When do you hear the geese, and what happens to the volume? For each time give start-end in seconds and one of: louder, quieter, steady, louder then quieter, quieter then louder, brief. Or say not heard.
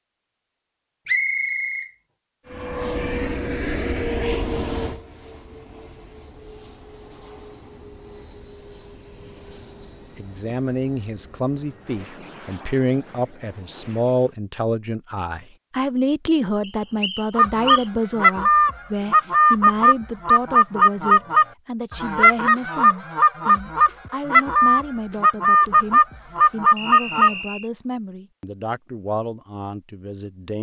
17.4-27.3 steady.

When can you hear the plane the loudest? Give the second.
4 s.